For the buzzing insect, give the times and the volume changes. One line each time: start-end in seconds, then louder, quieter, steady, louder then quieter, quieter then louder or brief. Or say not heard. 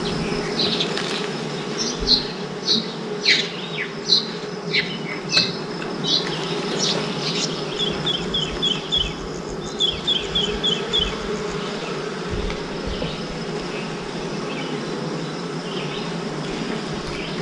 0.0-17.3 steady.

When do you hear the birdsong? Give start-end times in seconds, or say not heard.
0.0-11.6.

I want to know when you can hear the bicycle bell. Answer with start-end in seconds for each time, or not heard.
not heard.